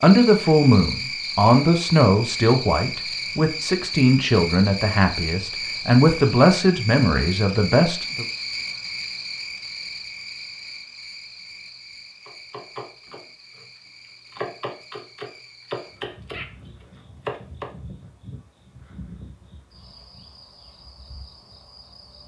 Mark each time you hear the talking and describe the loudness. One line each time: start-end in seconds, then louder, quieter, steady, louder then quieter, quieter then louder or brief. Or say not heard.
0.0-8.2 steady.